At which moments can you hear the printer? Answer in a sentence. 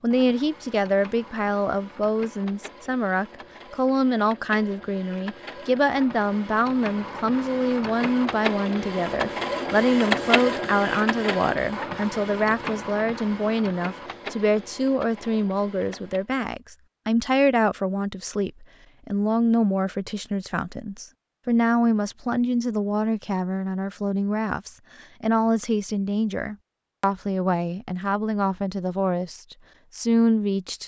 You can hear the printer from 0.1 to 16.3 s.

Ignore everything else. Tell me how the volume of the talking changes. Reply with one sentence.
The volume of the talking stays about the same.